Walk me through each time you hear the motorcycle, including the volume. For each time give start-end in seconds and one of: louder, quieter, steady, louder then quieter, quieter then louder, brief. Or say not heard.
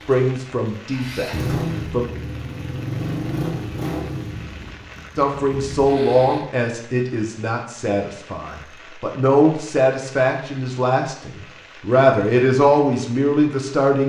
0.0-6.5 quieter.